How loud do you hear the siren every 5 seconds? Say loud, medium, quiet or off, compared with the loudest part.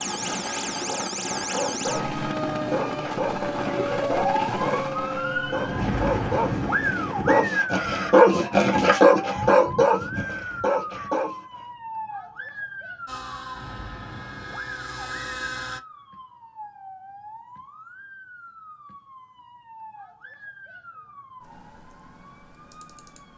loud, loud, medium, quiet, quiet.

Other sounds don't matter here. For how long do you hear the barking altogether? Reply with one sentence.
The barking can be heard for 11 seconds in total.